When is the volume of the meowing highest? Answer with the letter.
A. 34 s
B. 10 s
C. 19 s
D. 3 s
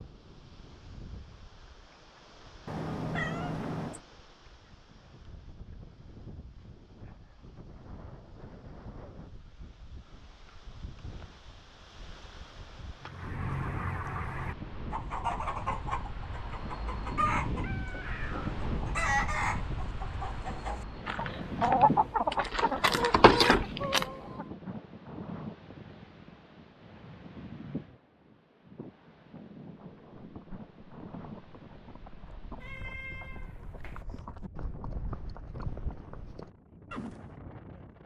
D.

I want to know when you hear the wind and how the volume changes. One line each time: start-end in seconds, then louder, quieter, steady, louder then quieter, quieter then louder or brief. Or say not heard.
0.0-38.0 louder then quieter.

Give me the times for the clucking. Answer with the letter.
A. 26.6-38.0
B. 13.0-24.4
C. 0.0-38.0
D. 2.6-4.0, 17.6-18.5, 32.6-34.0
B.